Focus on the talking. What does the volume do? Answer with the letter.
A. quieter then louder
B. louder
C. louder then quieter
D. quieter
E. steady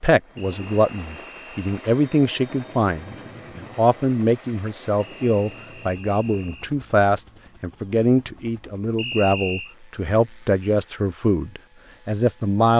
E.